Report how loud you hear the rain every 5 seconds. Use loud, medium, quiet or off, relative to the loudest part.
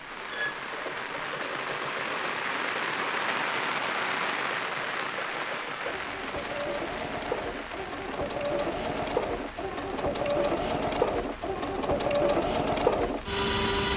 loud, medium, quiet.